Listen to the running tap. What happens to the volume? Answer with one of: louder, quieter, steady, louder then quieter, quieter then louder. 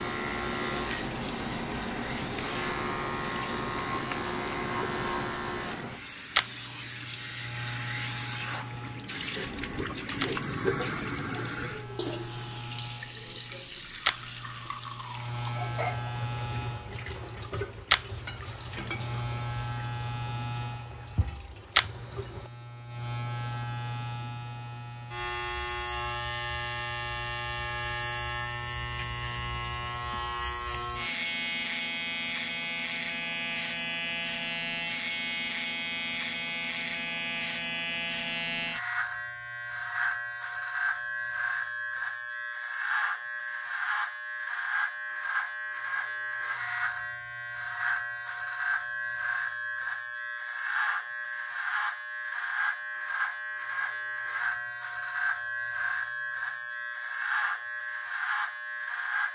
louder then quieter.